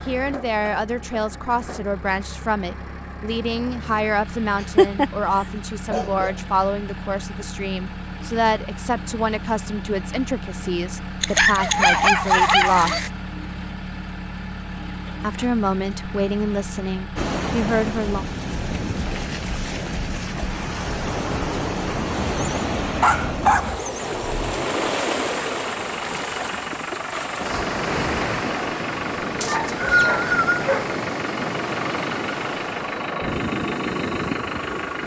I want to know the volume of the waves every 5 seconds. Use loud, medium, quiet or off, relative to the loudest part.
off, off, off, loud, loud, loud, loud.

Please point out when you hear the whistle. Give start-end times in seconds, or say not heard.
29.4-30.6.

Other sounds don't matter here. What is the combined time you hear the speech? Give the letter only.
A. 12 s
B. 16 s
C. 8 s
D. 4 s
B.